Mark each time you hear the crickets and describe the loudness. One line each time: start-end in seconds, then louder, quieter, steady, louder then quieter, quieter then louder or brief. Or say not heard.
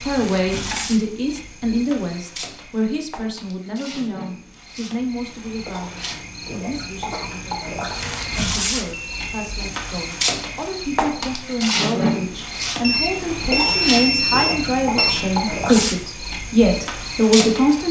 0.0-17.8 louder.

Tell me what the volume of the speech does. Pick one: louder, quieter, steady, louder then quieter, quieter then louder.
quieter then louder.